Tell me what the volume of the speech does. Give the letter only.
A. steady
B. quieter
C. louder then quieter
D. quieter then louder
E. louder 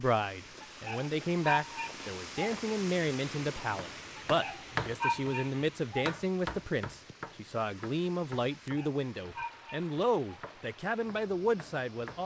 A.